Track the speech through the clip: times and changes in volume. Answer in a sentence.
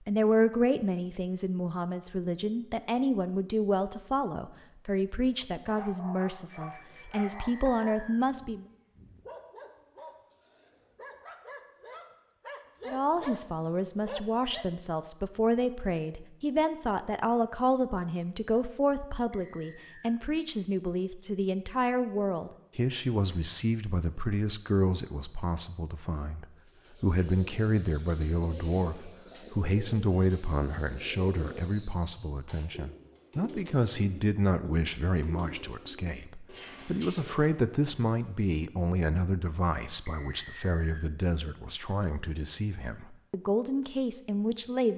You can hear the speech from 0.1 to 8.7 s, at a steady volume; and from 12.8 to 44.9 s, at a steady volume.